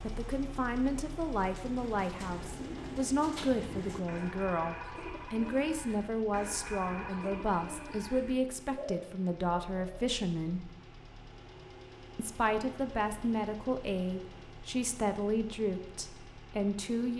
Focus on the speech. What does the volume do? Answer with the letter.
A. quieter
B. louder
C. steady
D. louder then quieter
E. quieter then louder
C.